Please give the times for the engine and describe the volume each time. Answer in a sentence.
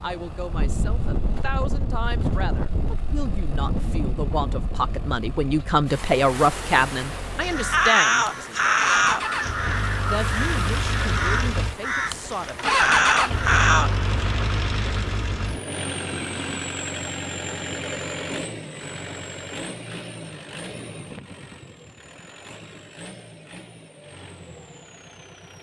You can hear the engine from 0.0 to 25.5 s, getting louder then quieter.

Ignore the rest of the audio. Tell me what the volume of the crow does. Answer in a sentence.
The volume of the crow goes down, then up.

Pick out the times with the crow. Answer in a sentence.
The crow can be heard from 7.4 to 13.9 s.